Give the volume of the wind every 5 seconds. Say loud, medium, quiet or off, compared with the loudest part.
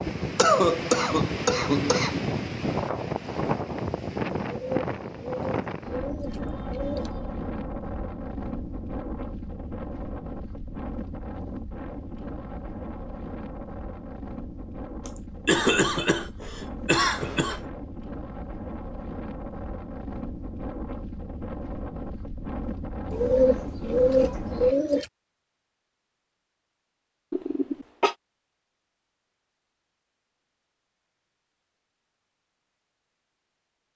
loud, medium, medium, medium, medium, off, off.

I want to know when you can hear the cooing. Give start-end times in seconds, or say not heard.
4.4-7.1, 23.1-25.1.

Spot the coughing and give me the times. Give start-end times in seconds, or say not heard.
0.3-2.2, 15.1-17.7, 27.3-28.1.